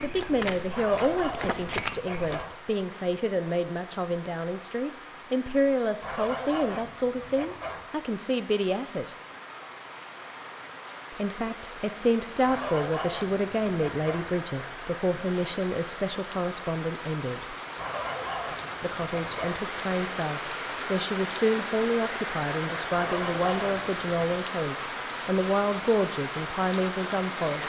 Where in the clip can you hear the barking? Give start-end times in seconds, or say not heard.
not heard.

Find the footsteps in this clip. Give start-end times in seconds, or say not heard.
0.0-2.5.